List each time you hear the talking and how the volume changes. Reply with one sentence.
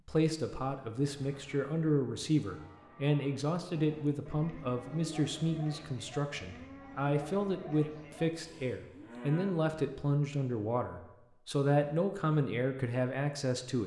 You can hear the talking from 0.1 to 13.8 s, at a steady volume.